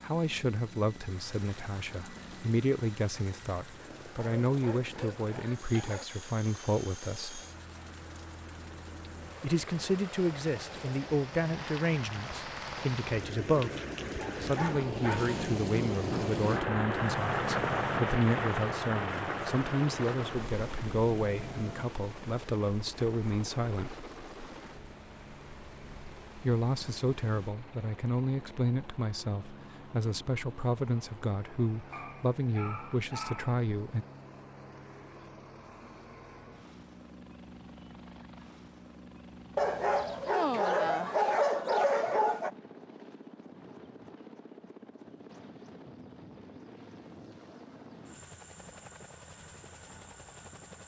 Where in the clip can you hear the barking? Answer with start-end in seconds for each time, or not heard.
4.2-6.0, 14.2-15.4, 31.9-33.6, 39.5-42.5.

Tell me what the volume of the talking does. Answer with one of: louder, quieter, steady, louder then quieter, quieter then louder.
steady.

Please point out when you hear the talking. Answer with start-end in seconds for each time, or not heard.
0.0-7.4, 9.4-13.8, 14.4-24.0, 26.4-34.0.